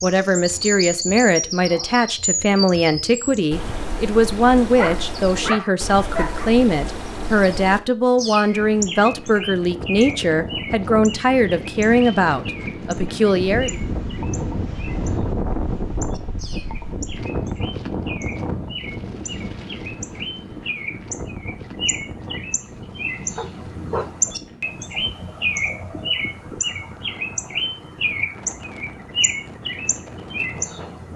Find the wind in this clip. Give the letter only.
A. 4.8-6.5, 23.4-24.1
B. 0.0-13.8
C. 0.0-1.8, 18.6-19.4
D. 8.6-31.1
D.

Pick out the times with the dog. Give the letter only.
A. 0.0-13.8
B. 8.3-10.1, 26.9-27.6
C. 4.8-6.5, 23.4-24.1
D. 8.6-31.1
C.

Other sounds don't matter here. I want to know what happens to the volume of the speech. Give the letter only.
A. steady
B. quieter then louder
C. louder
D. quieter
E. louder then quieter
A.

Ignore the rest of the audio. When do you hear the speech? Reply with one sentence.
The speech can be heard from 0.0 to 13.8 s.